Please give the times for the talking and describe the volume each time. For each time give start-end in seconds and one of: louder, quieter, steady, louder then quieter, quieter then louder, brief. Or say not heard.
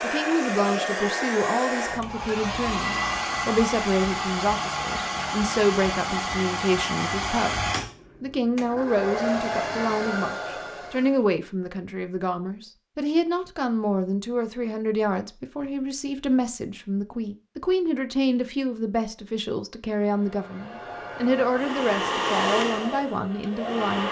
0.0-24.0 steady.